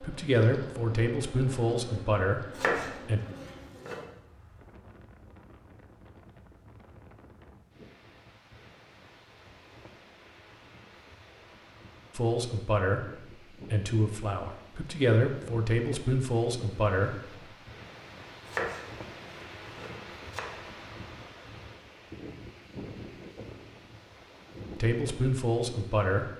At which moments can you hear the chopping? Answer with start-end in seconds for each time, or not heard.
2.5-4.0, 18.4-20.4.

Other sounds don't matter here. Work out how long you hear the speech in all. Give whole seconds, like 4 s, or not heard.
10 s.